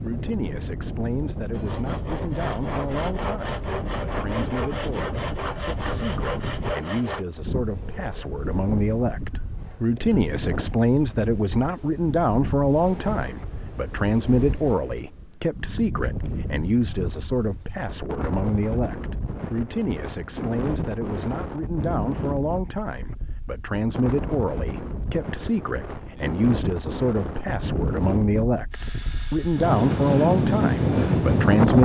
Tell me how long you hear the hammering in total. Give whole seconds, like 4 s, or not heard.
not heard.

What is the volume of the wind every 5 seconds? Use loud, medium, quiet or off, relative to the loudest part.
quiet, quiet, quiet, quiet, quiet, medium, loud.